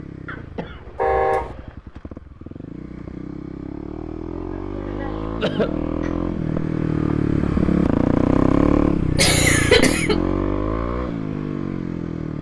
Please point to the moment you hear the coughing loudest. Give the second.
10 s.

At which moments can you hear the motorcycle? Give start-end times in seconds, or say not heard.
0.0-12.3.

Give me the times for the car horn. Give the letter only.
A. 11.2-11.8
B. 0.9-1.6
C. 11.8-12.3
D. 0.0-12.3
B.